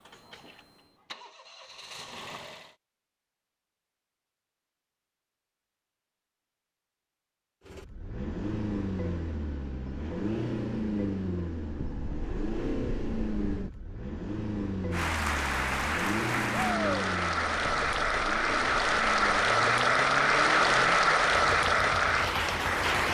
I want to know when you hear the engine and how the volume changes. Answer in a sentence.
The engine can be heard briefly from 0.0 to 2.8 s; and from 7.7 to 23.0 s, getting quieter.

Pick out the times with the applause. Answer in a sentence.
You can hear the applause from 14.9 to 23.0 s.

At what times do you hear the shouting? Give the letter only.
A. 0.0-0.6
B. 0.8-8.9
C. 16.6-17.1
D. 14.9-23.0
C.